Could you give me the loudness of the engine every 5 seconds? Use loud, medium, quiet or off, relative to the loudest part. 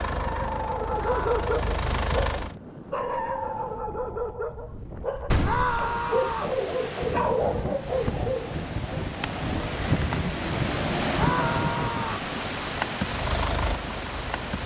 loud, off, loud.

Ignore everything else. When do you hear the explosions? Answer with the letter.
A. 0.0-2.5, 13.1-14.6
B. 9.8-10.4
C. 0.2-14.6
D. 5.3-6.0
D.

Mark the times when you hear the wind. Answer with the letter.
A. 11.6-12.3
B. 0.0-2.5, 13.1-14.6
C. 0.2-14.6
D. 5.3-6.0
C.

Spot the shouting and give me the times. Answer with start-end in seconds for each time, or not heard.
0.9-1.4, 5.4-6.5, 11.1-12.3.